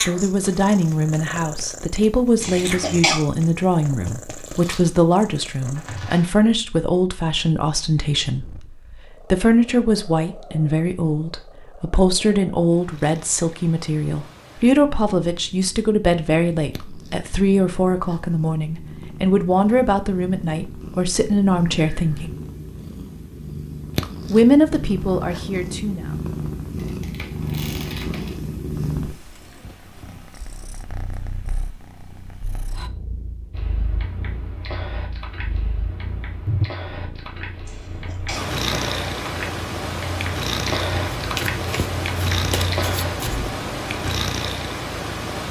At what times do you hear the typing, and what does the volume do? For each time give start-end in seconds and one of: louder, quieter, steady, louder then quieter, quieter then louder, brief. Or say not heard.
33.5-44.1 louder.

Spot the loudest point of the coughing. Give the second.
3 s.